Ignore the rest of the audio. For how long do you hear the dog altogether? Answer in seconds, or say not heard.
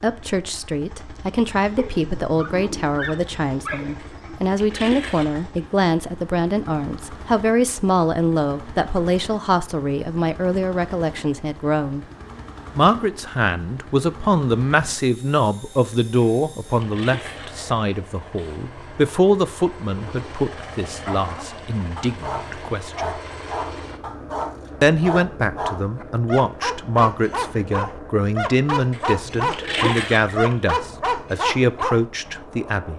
14 s.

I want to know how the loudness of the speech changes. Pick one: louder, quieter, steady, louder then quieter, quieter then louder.
steady.